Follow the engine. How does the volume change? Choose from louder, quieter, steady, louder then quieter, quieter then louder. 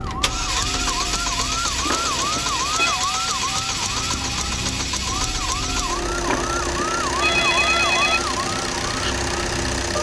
steady.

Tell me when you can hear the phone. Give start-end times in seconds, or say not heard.
1.9-3.0, 6.2-8.2.